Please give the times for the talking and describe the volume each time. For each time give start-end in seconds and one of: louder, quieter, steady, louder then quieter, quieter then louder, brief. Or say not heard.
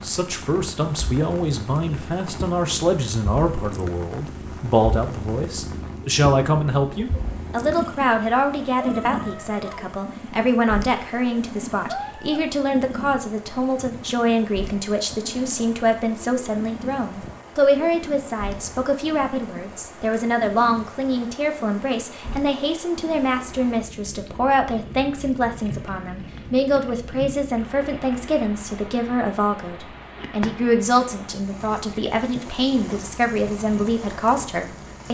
0.0-35.0 steady.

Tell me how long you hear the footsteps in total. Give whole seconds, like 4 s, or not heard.
not heard.